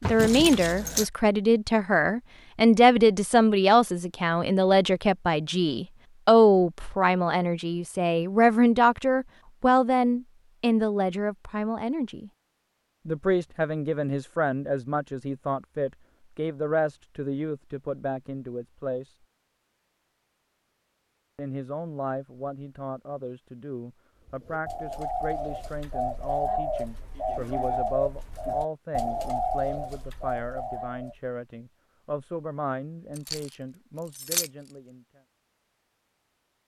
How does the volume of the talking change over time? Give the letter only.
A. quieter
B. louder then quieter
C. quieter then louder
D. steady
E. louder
A.